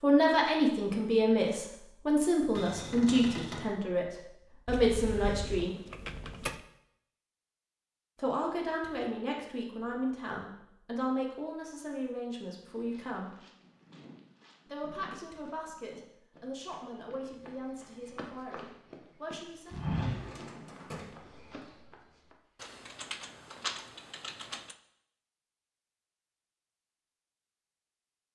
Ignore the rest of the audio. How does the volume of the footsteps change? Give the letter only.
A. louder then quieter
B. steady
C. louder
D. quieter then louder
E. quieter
A.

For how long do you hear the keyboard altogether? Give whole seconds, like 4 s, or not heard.
4 s.